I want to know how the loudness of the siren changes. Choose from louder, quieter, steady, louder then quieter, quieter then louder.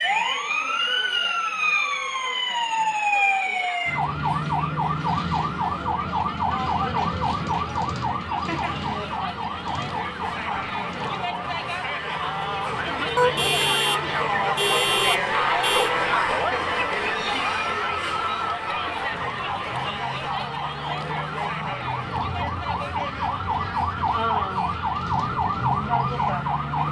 quieter then louder.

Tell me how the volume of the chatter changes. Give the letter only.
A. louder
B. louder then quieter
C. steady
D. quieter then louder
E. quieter
B.